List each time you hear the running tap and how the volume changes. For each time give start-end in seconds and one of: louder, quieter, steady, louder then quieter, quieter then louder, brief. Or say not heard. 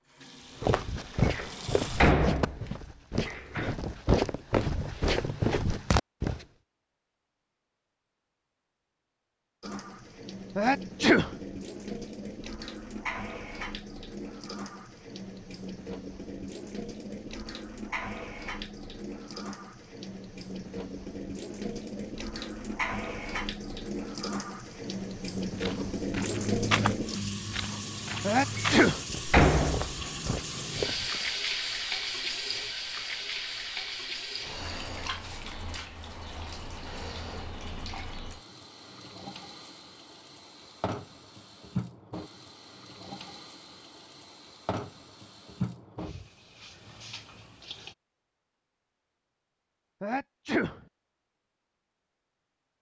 0.0-2.1 brief
9.6-48.0 louder then quieter.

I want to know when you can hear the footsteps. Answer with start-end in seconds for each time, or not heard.
0.6-6.5, 25.4-31.3.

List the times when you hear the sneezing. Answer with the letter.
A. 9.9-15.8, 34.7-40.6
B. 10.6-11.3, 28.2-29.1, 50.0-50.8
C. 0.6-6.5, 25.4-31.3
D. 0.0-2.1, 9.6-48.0
B.